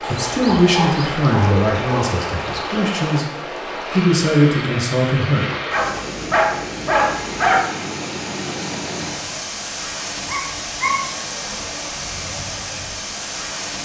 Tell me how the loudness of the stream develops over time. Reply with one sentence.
The volume of the stream stays about the same.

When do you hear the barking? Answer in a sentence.
You can hear the barking from 0.0 to 2.0 s, from 5.7 to 7.6 s and from 10.2 to 10.9 s.